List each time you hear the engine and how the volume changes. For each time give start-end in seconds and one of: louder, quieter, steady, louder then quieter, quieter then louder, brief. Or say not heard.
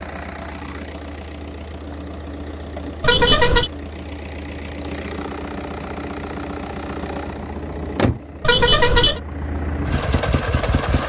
0.0-11.0 louder.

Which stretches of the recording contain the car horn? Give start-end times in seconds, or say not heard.
3.0-3.7, 8.4-9.2.